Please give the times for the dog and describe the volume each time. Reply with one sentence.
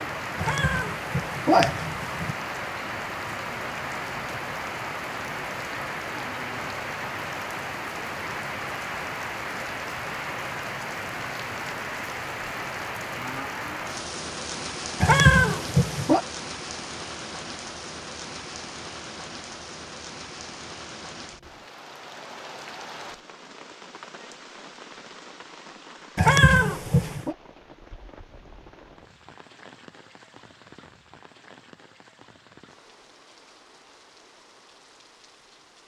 The dog can't be heard in this clip.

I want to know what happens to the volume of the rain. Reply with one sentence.
The volume of the rain goes down.